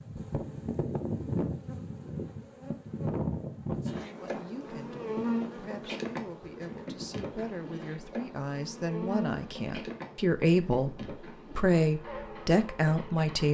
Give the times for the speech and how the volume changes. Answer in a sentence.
The speech can be heard from 4.2 to 13.4 s, getting louder.